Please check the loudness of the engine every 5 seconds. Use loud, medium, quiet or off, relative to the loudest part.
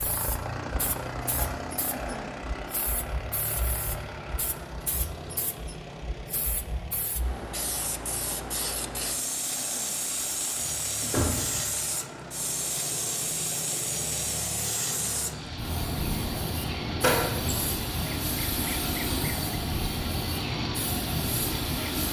loud, medium, medium, loud, loud.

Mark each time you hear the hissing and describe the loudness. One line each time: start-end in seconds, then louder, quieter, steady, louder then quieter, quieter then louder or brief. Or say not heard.
0.0-22.0 louder.